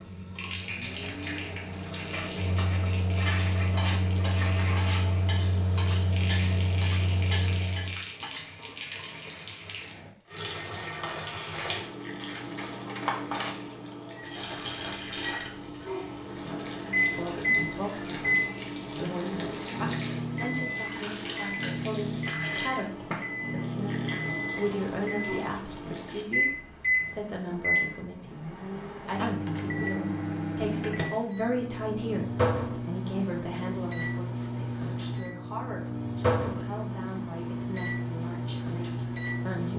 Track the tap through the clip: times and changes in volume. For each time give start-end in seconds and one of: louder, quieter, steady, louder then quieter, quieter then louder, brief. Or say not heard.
0.0-26.2 steady.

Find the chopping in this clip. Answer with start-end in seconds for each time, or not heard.
not heard.